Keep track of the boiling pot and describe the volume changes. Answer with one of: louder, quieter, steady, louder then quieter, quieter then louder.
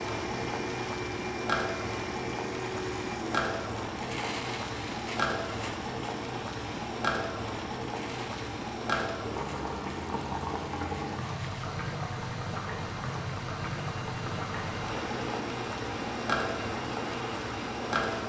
steady.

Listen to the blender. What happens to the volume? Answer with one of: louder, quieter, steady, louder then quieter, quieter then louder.
quieter then louder.